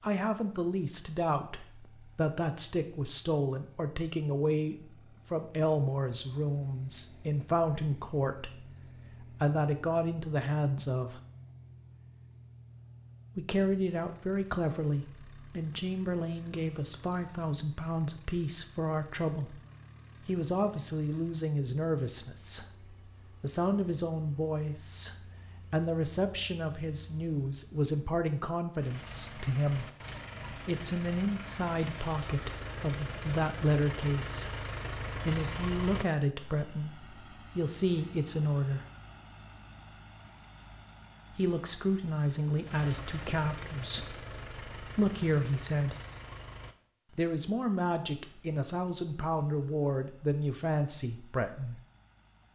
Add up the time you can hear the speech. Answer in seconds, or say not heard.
45 s.